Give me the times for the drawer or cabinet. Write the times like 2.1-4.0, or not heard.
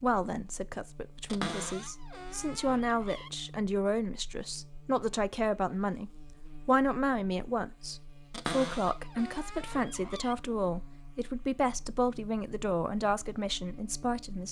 1.2-3.3, 8.3-10.3.